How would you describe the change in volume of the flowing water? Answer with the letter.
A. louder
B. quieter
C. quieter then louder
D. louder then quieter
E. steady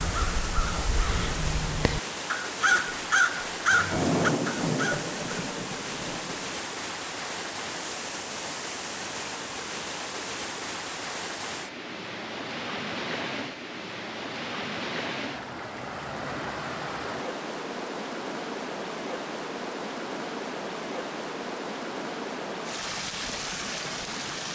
E.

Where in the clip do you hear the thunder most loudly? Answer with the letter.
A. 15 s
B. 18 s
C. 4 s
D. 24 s
C.